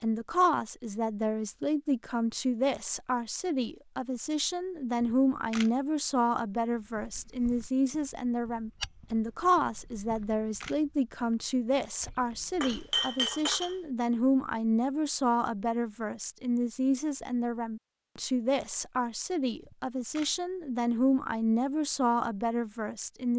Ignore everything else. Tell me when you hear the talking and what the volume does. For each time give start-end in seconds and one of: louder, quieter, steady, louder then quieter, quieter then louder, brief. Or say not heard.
0.0-23.3 steady.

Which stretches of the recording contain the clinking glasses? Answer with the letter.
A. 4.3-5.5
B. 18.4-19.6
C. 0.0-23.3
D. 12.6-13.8
D.